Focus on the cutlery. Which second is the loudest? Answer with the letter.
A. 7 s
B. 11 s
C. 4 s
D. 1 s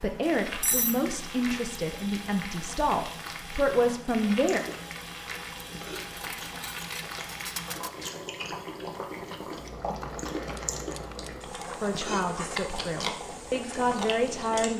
D.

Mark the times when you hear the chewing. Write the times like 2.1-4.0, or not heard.
4.2-14.7.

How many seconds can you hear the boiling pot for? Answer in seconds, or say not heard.
15 s.